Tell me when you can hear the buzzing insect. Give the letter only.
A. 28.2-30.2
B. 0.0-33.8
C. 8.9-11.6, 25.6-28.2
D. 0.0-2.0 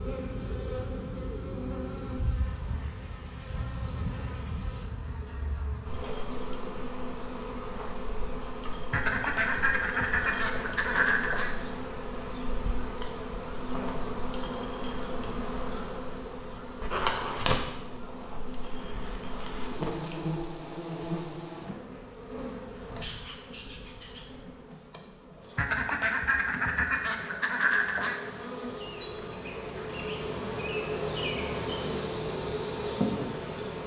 B.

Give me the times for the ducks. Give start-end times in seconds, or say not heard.
8.9-11.6, 25.6-28.2.